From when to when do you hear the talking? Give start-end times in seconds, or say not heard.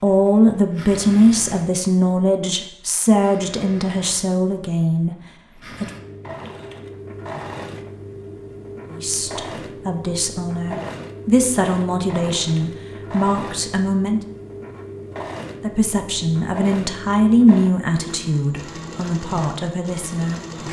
0.0-5.9, 8.9-14.2, 15.6-20.4.